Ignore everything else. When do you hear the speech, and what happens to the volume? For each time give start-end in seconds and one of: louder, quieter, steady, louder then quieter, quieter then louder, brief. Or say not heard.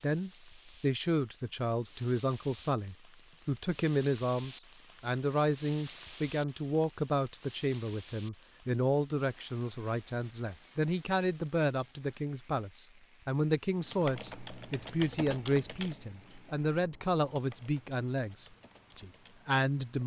0.0-20.0 steady.